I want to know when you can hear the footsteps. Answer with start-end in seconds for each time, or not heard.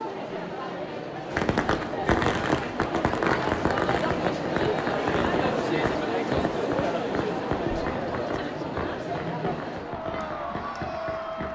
not heard.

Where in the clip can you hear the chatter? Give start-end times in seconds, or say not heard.
0.0-11.5.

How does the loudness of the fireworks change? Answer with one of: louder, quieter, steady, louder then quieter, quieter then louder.
quieter.